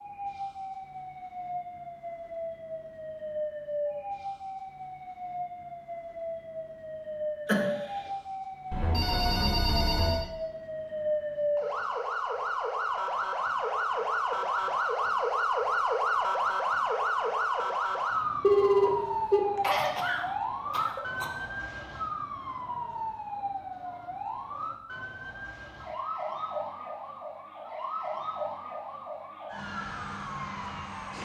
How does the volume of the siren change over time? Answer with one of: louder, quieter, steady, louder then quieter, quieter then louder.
louder then quieter.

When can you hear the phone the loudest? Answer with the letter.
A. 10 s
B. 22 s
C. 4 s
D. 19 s
D.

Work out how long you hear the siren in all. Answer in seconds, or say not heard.
31 s.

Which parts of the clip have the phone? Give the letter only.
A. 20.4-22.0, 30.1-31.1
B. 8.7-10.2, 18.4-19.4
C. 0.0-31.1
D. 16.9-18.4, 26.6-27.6
B.